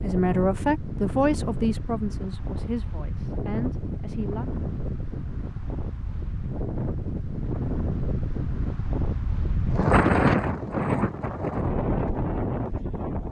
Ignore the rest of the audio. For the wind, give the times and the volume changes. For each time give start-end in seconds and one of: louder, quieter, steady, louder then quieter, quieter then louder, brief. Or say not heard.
0.0-13.2 louder.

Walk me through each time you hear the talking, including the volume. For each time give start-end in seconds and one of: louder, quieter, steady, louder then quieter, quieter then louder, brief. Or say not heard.
0.0-4.5 quieter.